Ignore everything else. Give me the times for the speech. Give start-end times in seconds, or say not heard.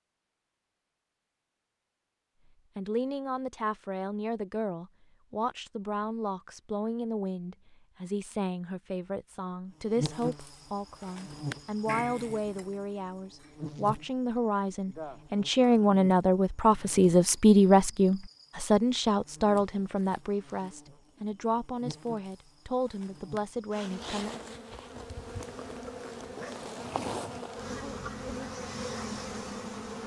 2.8-24.4.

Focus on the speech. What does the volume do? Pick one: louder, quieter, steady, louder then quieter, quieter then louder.
louder then quieter.